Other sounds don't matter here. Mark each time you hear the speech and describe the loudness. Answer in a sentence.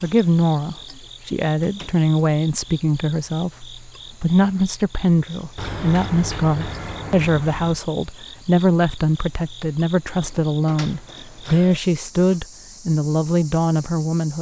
You can hear the speech from 0.0 to 14.3 s, at a steady volume.